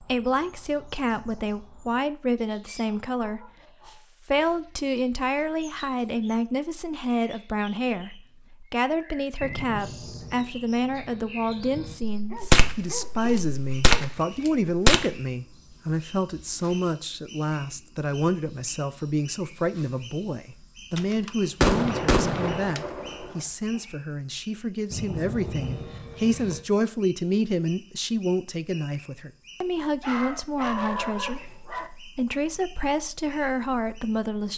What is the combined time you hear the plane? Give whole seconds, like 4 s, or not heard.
4 s.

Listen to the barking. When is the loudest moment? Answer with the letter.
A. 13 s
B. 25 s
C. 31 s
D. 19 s
C.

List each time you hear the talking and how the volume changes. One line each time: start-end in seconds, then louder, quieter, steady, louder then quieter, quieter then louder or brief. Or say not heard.
0.0-34.5 steady.